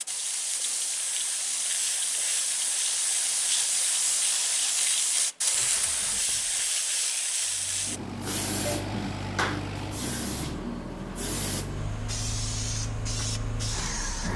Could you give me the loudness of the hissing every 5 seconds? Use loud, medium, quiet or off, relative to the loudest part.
loud, loud, medium.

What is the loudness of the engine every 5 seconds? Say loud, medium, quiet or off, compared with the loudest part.
off, loud, loud.